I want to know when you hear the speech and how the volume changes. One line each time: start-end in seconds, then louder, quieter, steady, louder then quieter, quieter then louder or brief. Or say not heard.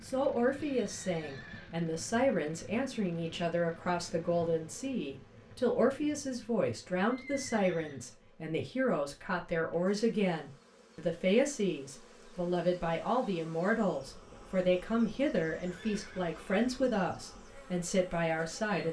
0.0-18.8 steady.